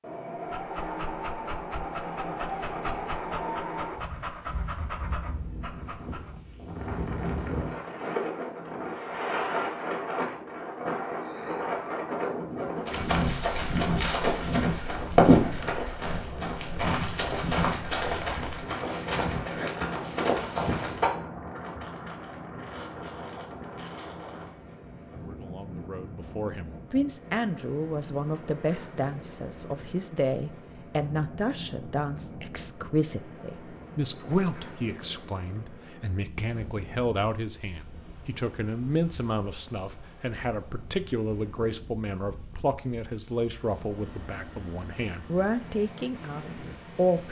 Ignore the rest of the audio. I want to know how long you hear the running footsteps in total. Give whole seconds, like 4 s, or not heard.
8 s.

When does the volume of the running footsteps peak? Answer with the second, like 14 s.
15 s.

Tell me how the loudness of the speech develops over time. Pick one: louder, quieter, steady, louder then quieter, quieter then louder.
steady.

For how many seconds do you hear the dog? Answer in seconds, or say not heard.
6 s.